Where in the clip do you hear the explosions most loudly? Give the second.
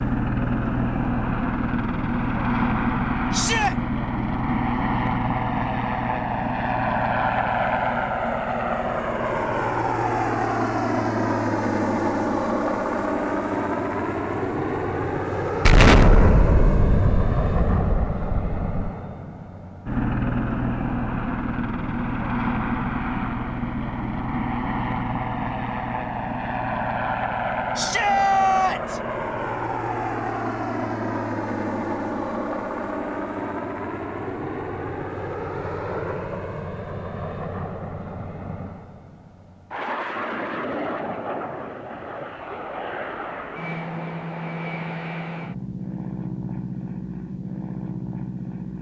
16 s.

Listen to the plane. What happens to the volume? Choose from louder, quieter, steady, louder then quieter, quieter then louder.
quieter.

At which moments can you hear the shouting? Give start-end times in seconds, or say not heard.
3.3-3.8, 27.8-29.0.